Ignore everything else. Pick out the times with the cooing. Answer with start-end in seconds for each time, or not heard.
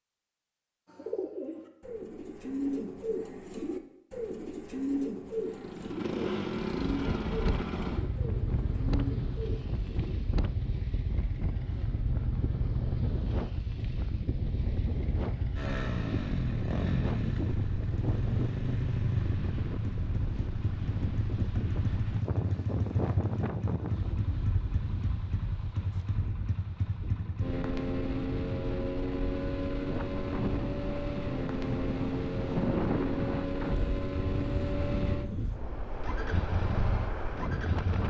0.8-10.2.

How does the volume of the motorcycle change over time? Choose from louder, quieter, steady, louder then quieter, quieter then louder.
steady.